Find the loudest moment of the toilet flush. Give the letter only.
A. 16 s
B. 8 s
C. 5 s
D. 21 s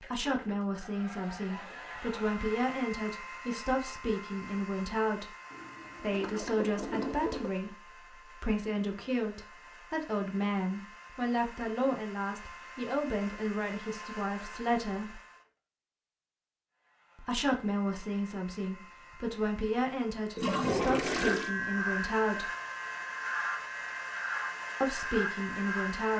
D.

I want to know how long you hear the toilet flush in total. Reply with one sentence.
The toilet flush can be heard for 3 seconds in total.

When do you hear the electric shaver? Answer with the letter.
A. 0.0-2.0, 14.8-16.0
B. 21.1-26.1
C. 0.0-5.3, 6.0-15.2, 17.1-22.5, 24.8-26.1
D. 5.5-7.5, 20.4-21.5
B.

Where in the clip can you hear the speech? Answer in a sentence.
The speech can be heard from 0.0 to 5.3 s, from 6.0 to 15.2 s, from 17.1 to 22.5 s and from 24.8 to 26.1 s.